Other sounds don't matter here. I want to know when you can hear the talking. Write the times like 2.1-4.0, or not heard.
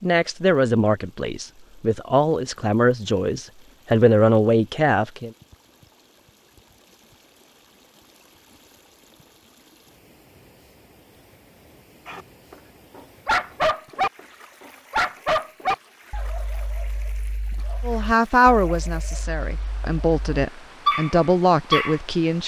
0.0-5.3, 17.8-22.4.